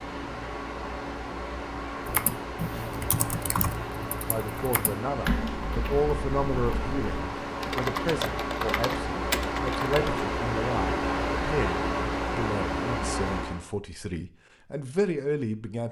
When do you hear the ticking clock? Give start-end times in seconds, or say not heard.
not heard.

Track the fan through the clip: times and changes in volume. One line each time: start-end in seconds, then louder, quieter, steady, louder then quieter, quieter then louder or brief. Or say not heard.
0.0-13.7 louder.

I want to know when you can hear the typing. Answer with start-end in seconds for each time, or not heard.
2.0-10.2.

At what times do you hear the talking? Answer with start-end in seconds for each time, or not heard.
4.2-15.8.